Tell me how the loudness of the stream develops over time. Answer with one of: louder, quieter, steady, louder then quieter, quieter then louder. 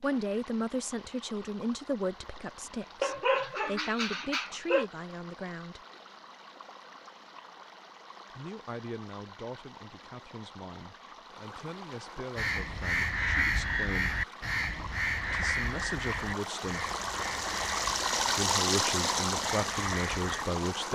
louder.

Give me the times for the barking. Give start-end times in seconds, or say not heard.
3.0-4.8.